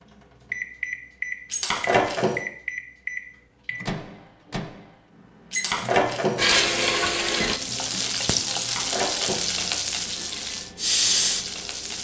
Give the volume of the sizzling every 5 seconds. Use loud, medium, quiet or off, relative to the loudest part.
off, loud, loud.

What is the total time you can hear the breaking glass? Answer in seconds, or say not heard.
3 s.